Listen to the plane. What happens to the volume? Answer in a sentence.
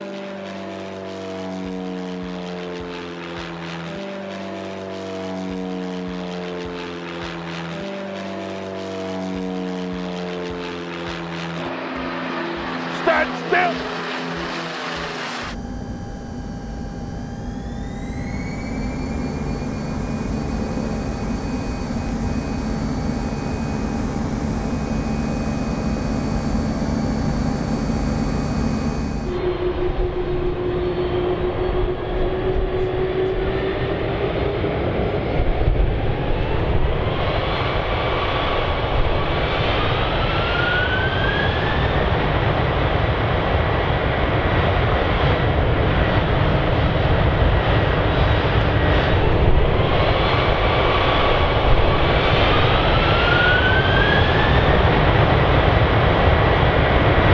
The volume of the plane goes up.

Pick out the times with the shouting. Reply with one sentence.
The shouting can be heard from 12.9 to 13.8 s.